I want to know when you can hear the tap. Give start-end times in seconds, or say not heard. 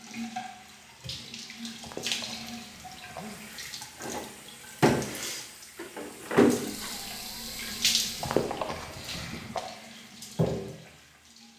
0.0-11.5.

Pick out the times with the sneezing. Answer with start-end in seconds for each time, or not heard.
1.8-3.4, 8.2-9.7.